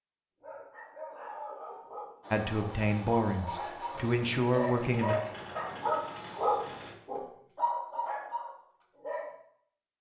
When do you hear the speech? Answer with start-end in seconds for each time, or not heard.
2.3-5.2.